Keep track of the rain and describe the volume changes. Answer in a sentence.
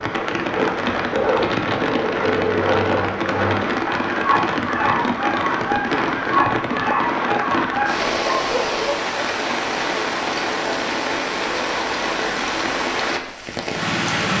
The volume of the rain stays about the same.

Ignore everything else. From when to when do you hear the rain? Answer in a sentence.
You can hear the rain from 0.0 to 14.3 s.